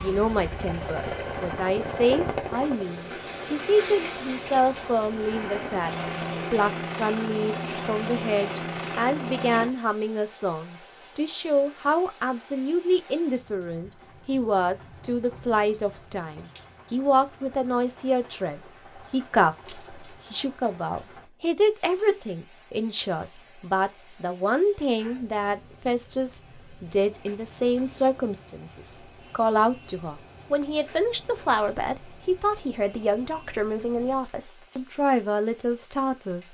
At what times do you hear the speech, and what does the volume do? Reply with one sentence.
The speech can be heard from 0.0 to 36.4 s, at a steady volume.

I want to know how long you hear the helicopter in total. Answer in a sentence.
You can hear the helicopter for 10 seconds altogether.